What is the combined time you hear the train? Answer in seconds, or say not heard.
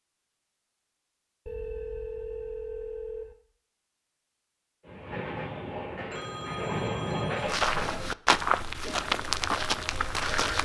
3 s.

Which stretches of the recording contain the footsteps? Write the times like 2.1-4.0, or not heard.
7.4-10.6.